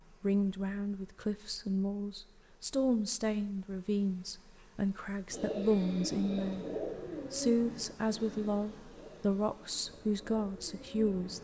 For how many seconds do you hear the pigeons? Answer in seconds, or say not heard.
6 s.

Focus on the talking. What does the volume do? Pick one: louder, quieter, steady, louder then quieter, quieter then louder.
steady.